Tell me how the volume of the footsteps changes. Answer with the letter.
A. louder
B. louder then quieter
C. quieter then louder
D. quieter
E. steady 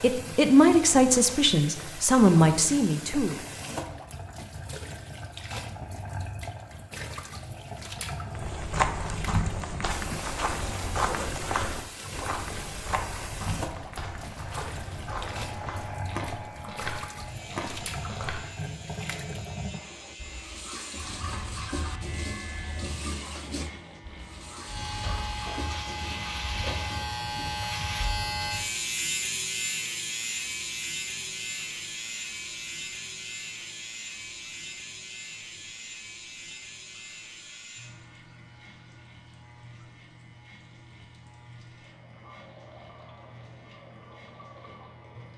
D.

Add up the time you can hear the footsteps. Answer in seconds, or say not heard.
10 s.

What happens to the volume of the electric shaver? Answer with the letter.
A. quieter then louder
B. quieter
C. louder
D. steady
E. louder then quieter
E.